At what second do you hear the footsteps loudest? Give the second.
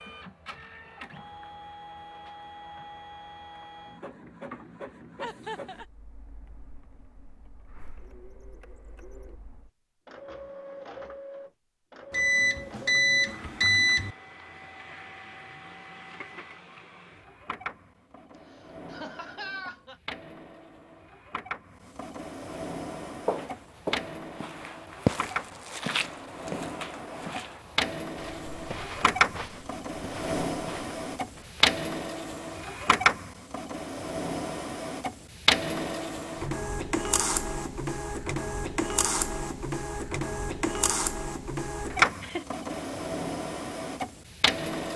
25 s.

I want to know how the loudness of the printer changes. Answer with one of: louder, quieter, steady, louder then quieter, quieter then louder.
louder.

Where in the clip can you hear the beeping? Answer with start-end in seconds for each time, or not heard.
12.1-14.2.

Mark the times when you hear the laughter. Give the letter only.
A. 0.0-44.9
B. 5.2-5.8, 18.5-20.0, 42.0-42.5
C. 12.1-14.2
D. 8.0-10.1
B.